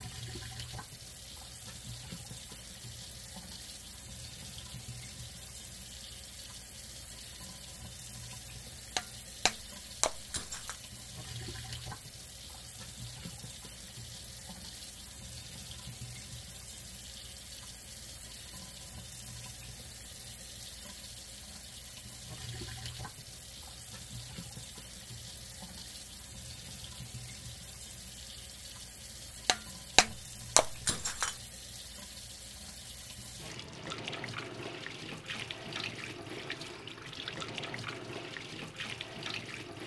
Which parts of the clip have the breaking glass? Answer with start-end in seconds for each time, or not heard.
8.9-10.8, 29.4-31.4.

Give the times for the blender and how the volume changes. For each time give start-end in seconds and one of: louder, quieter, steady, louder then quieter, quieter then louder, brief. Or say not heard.
not heard.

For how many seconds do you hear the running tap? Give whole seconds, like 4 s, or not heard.
40 s.